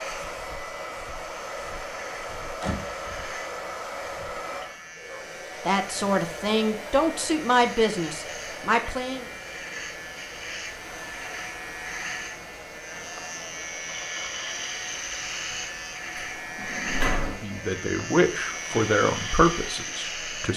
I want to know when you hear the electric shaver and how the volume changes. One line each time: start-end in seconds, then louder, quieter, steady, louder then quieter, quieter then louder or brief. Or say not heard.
0.0-20.5 louder.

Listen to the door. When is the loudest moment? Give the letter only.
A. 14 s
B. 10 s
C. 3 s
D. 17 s
D.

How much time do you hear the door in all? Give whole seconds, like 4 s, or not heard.
2 s.